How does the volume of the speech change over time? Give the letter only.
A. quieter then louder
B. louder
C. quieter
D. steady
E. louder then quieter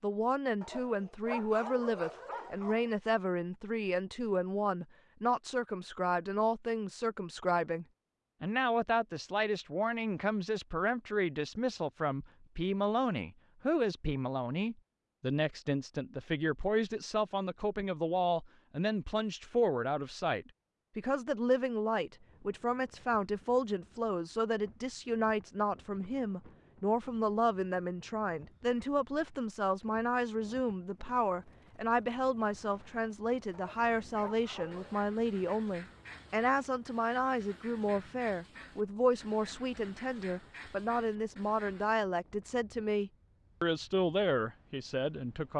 D.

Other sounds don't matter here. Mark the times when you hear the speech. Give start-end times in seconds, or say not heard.
0.0-45.5.